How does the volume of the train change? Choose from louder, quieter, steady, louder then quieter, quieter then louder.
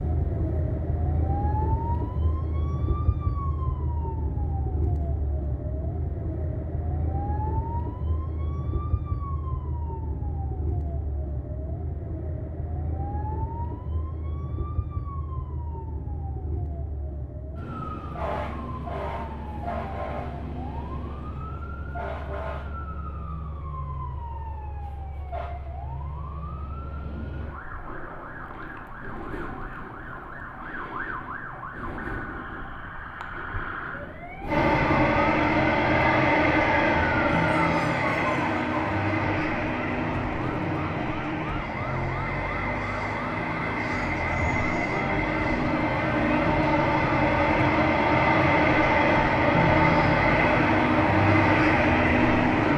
quieter then louder.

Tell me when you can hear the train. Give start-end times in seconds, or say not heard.
34.5-52.7.